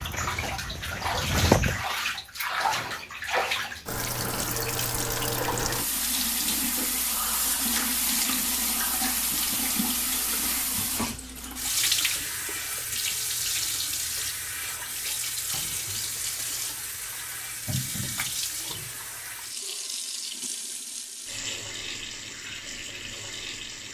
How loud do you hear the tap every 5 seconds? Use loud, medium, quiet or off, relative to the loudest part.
loud, loud, loud, medium, medium.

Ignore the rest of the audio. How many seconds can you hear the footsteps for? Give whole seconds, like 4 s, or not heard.
2 s.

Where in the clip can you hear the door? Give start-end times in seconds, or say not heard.
17.6-18.4.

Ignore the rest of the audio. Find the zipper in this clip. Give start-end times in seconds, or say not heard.
not heard.